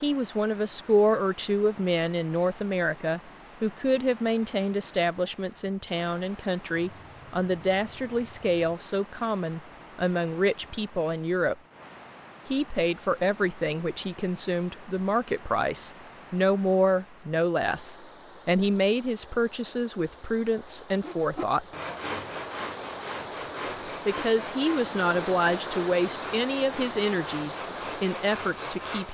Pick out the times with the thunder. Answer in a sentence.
You can't hear the thunder here.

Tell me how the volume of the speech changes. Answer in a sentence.
The loudness of the speech stays about the same.